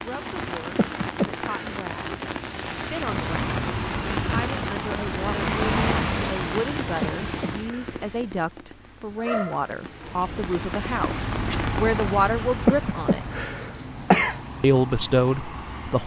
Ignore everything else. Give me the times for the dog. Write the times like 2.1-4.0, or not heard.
9.2-10.2.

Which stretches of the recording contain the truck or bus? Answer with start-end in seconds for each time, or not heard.
2.9-7.7, 10.0-16.0.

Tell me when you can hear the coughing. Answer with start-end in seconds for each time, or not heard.
0.8-1.9, 7.0-8.0, 12.7-14.3.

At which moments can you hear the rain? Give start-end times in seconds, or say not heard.
0.0-12.2.